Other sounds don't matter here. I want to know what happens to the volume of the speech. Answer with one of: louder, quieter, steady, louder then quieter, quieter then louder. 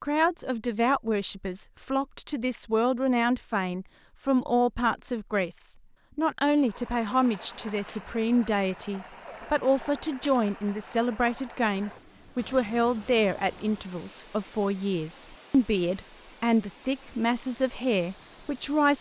steady.